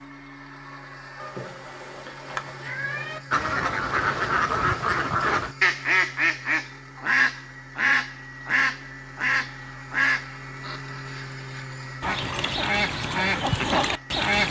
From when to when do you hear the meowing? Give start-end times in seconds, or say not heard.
1.1-3.2.